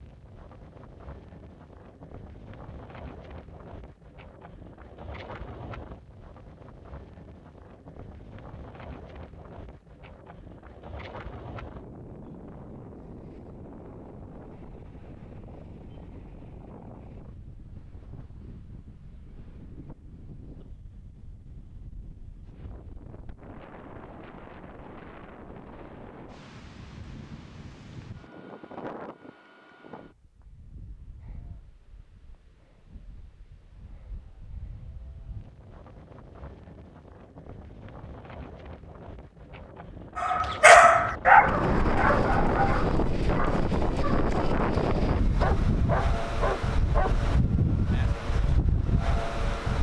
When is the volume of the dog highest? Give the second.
41 s.